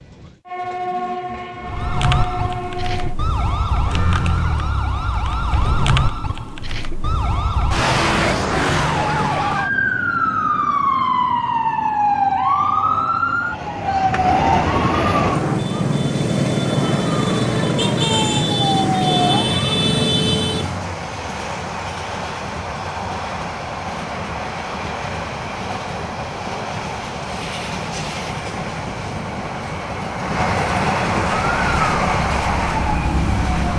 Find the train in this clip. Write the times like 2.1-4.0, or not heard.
0.0-3.1, 14.2-33.7.